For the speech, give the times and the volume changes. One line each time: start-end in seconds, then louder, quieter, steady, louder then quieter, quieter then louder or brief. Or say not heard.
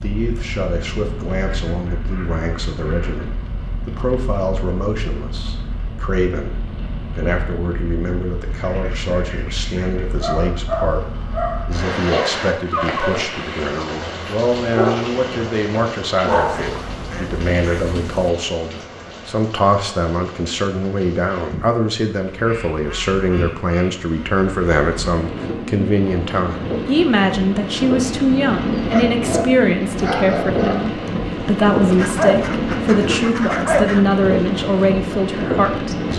0.0-36.1 louder.